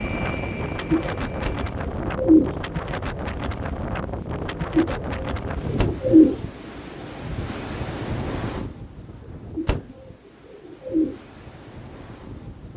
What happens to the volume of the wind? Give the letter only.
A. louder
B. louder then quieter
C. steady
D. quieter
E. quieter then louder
D.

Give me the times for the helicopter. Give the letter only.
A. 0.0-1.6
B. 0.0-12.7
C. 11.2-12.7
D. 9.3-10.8
A.